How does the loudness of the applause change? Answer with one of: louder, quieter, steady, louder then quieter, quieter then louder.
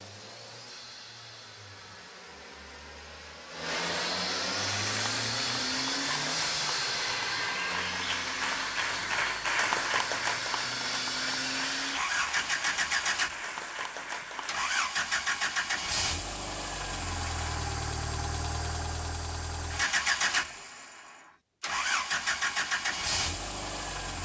louder then quieter.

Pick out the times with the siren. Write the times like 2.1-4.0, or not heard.
not heard.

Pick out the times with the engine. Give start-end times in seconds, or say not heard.
0.0-24.2.